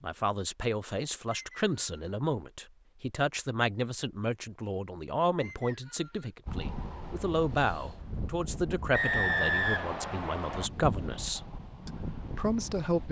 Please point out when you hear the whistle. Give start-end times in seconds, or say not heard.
1.3-2.2, 5.4-6.3, 8.9-10.7.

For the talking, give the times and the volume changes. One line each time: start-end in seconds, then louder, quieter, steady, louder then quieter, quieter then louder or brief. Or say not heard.
0.0-13.0 steady.